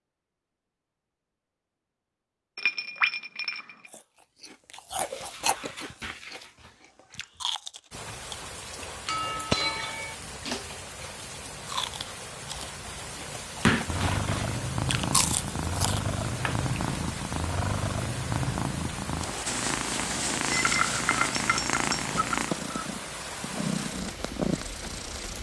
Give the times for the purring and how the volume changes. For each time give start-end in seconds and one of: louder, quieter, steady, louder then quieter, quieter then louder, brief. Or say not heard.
13.8-25.3 steady.